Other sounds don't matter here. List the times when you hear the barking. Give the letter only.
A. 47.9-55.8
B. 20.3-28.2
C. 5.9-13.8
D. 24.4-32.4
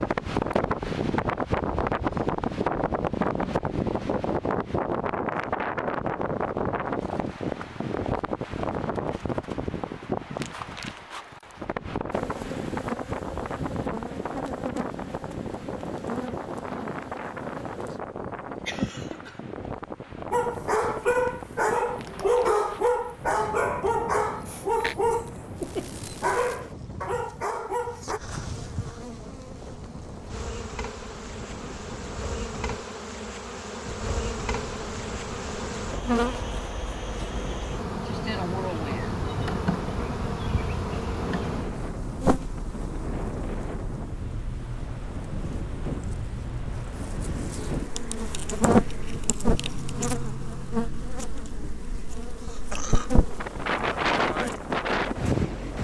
B.